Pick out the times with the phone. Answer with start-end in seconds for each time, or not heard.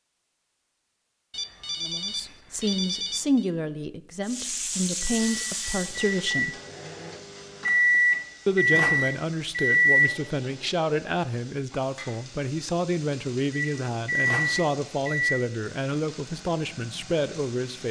1.3-3.5.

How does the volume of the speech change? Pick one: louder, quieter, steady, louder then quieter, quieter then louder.
steady.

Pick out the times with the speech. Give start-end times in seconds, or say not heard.
1.8-6.5, 8.4-17.8.